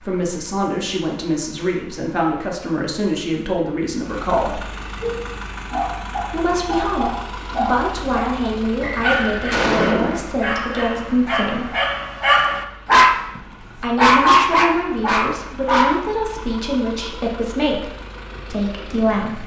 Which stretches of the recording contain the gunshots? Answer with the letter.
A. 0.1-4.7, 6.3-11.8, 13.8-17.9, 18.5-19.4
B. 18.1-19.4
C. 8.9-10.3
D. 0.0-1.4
C.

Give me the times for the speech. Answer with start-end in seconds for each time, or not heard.
0.1-4.7, 6.3-11.8, 13.8-17.9, 18.5-19.4.